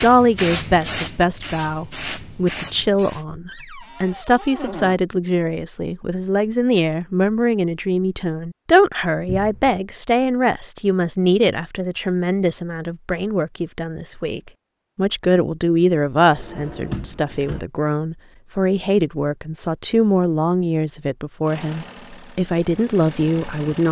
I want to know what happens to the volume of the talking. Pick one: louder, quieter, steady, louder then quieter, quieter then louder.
steady.